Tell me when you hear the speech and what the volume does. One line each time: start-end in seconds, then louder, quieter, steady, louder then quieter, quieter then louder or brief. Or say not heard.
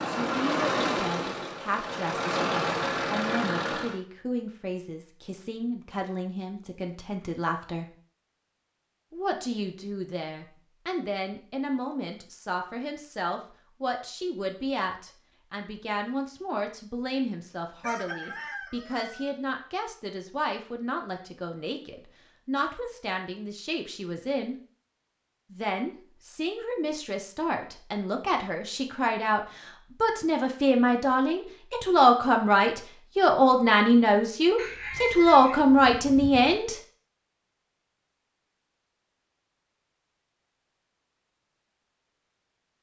0.0-7.9 steady
9.1-24.6 steady
25.5-36.8 louder.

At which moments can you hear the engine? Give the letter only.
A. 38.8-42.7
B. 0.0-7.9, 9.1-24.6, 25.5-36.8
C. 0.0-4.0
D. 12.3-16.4
C.